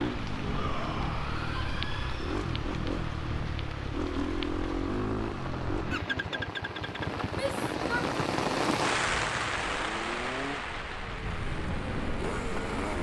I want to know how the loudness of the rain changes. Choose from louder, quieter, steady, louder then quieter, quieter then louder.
louder then quieter.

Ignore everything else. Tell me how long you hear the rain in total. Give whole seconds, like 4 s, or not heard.
13 s.